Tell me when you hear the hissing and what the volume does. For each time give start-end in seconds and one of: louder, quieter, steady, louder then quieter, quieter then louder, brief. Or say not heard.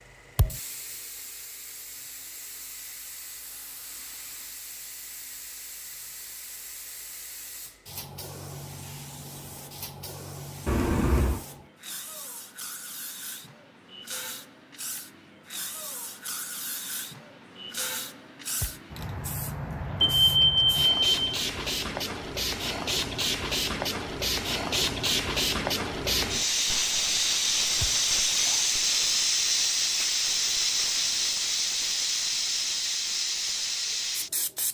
0.0-34.6 louder.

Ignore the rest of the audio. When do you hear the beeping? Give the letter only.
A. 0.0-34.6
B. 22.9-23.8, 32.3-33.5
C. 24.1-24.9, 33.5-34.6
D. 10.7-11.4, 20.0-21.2
D.